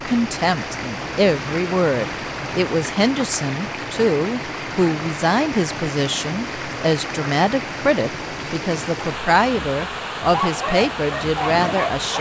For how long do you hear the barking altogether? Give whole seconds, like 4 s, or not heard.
2 s.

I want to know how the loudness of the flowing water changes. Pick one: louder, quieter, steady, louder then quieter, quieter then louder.
steady.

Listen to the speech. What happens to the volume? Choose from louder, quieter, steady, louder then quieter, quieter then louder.
steady.